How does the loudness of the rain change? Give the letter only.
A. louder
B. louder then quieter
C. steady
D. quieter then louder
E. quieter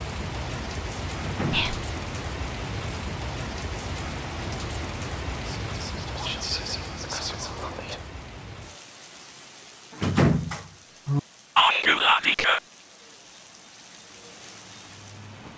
E.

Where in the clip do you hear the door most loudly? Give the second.
10 s.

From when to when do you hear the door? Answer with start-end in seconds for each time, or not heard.
1.1-1.7, 9.9-11.2.